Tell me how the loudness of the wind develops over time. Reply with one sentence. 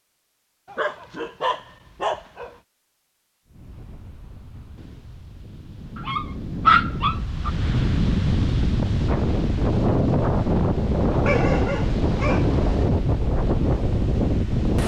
The loudness of the wind goes up.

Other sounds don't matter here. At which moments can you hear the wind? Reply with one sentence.
You can hear the wind from 3.5 to 14.8 s.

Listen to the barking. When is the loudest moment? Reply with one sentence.
The volume of the barking peaks at 7 seconds.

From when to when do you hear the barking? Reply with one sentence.
You can hear the barking from 0.7 to 2.5 s, from 6.0 to 7.5 s and from 11.2 to 12.9 s.